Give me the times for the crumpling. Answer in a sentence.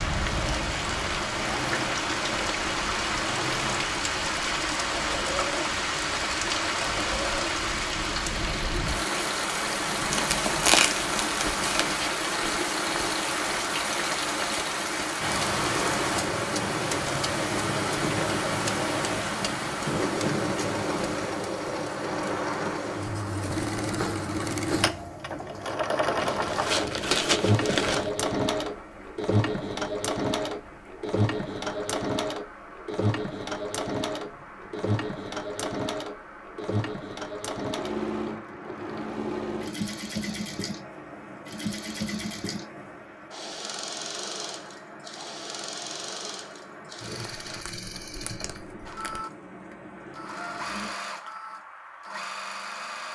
The crumpling can be heard from 10.1 to 11.8 s, from 26.1 to 28.1 s and from 47.5 to 49.2 s.